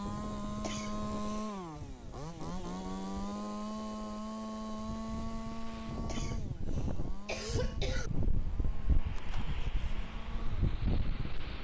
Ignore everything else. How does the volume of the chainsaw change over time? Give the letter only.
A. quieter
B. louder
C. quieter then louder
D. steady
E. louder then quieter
A.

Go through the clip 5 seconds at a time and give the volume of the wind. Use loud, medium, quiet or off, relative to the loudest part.
medium, loud, loud.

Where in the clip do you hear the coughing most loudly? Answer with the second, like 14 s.
7 s.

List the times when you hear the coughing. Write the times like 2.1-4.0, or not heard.
0.6-1.6, 6.0-8.1.